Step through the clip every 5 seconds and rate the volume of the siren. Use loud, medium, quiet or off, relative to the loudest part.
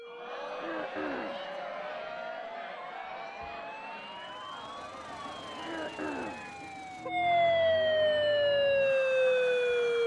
quiet, loud.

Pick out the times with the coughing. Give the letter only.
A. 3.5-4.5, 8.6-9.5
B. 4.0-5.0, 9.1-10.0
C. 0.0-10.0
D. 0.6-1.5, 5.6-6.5
D.